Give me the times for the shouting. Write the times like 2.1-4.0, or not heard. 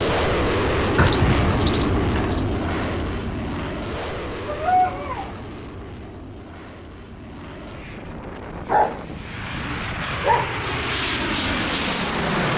not heard.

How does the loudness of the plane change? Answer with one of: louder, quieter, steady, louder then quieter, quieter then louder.
quieter then louder.